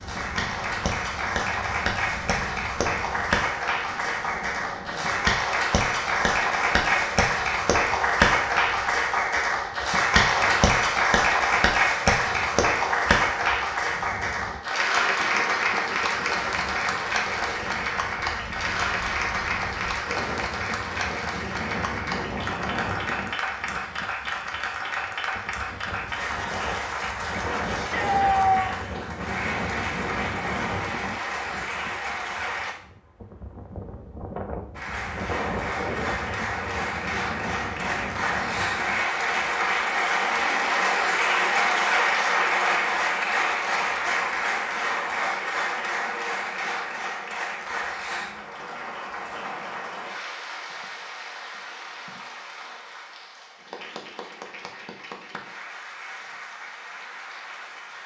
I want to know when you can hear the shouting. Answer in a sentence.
You can hear the shouting from 27.7 to 28.8 s.